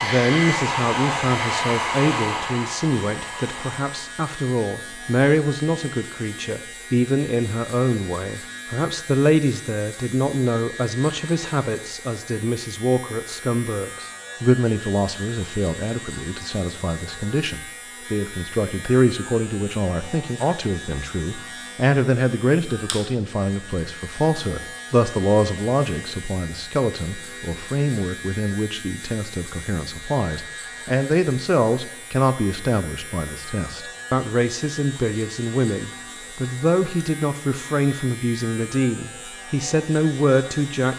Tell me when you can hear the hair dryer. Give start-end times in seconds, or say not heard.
0.0-4.0.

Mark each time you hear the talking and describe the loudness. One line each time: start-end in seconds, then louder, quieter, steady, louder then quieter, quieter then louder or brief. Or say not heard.
0.0-40.9 steady.